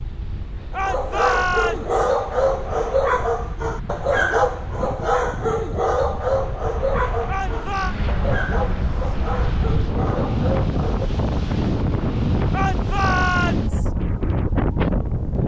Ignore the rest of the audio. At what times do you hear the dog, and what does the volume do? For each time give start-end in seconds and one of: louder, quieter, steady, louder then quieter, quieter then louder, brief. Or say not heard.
0.7-11.1 quieter.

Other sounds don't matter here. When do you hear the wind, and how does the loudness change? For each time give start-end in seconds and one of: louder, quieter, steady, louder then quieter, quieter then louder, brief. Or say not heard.
0.0-15.4 louder.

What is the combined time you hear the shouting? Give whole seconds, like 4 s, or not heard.
3 s.